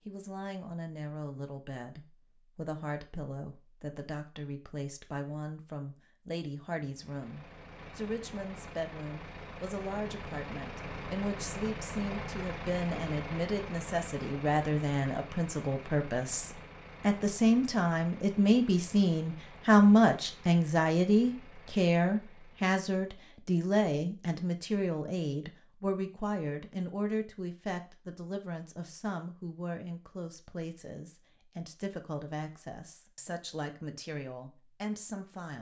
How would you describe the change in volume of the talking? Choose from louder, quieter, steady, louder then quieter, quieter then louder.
louder then quieter.